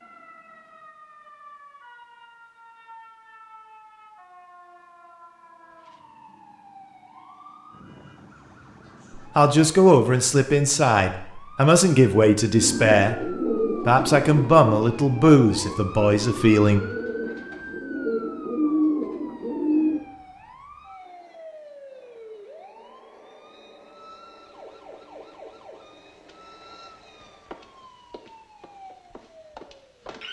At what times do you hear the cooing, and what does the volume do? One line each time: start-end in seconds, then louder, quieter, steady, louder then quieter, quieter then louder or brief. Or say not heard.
12.6-20.0 quieter then louder.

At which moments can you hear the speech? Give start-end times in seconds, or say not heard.
9.2-16.8.